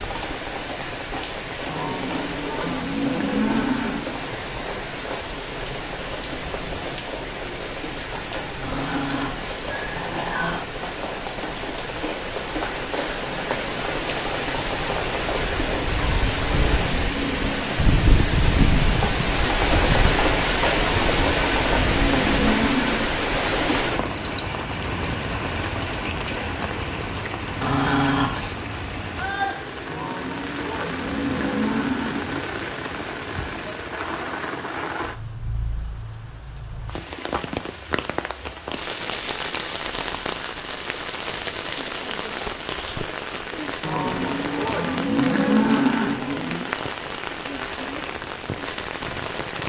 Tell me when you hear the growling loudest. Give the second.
28 s.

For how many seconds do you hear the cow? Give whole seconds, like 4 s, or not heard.
12 s.